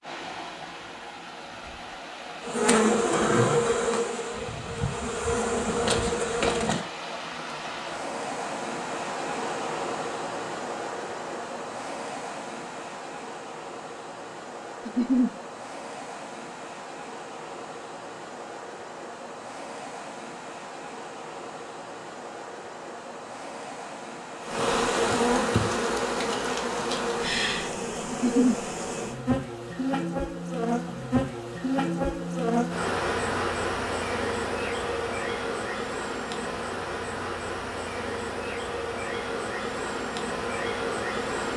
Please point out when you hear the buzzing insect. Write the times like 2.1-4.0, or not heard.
2.4-6.8, 24.4-41.5.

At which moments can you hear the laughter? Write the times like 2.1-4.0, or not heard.
14.8-15.3, 28.1-28.6.